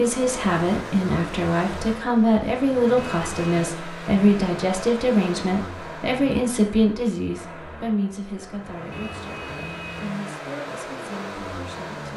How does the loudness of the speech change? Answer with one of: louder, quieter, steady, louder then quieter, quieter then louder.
quieter.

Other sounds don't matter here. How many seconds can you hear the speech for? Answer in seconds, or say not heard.
12 s.